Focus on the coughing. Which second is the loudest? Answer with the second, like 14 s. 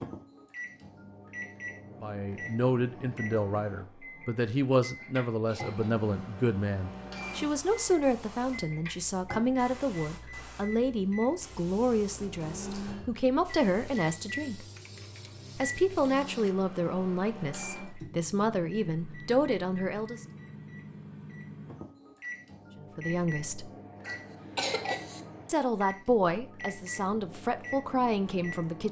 25 s.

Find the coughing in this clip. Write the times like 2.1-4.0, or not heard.
5.0-6.1, 24.0-25.2.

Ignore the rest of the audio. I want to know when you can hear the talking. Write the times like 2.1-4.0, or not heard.
2.0-14.7, 15.6-20.2, 22.8-23.7, 25.4-28.8.